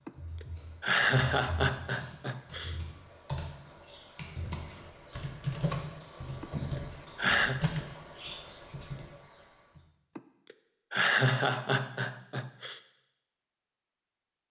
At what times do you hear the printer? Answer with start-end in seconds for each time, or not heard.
not heard.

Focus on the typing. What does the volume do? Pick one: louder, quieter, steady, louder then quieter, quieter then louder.
louder.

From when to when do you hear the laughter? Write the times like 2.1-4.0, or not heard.
0.1-2.8, 6.4-7.6, 10.2-12.8.